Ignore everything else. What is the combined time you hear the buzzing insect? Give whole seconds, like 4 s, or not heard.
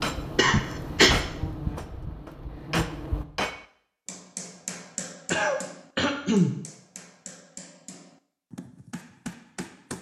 3 s.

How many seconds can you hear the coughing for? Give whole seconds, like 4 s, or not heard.
2 s.